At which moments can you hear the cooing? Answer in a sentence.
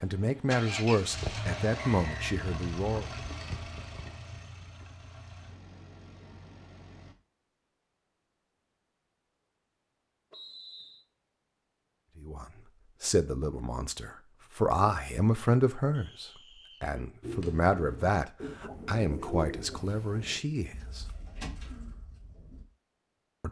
The cooing can be heard from 17.2 to 22.6 s.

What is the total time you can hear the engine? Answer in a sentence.
The engine can be heard for 7 seconds in total.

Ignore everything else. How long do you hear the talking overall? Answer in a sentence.
You can hear the talking for 12 seconds altogether.